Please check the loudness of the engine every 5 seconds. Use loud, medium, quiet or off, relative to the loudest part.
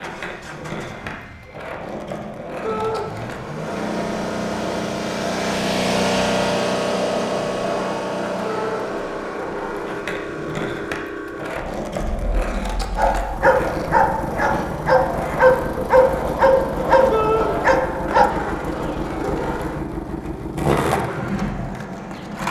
medium, loud, medium, medium, medium.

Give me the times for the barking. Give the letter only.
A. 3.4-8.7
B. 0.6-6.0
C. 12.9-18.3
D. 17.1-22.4
C.